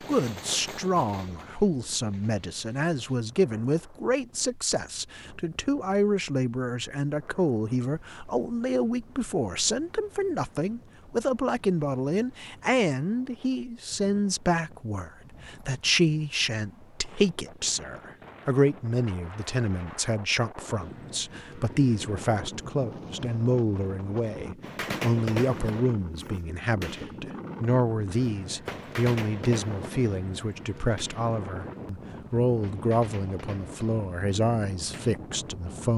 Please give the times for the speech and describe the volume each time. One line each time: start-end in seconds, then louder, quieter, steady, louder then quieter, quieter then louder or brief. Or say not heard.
0.0-35.9 steady.